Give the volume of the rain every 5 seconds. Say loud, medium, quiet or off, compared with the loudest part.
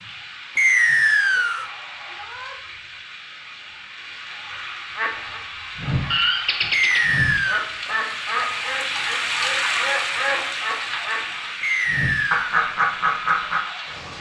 medium, loud, loud.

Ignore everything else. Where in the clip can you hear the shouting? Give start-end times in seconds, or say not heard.
2.0-2.6.